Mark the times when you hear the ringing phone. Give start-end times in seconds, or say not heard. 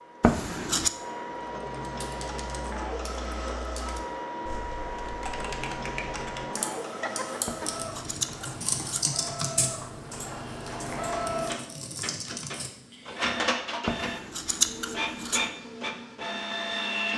7.0-7.8.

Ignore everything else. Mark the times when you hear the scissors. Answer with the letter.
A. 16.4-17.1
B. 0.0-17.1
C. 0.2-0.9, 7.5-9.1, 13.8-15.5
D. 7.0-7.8
C.